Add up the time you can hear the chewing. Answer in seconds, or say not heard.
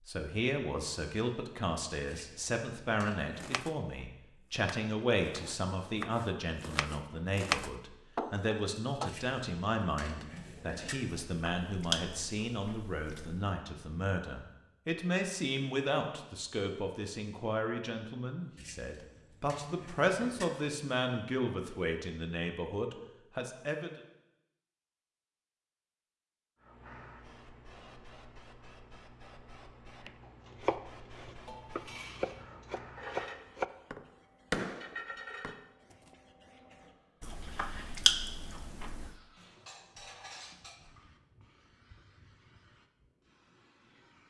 4 s.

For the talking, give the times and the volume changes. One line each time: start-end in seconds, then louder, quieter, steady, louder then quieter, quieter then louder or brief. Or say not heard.
0.1-24.0 steady.